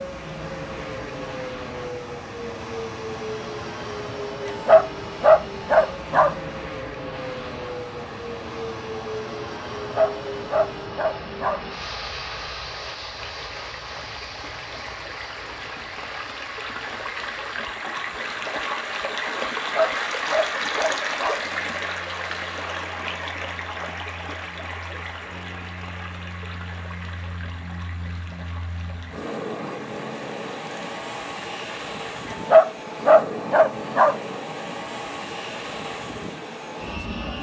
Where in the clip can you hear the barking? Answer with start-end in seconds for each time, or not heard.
4.5-6.3, 9.8-11.6, 19.6-21.4, 32.3-34.1.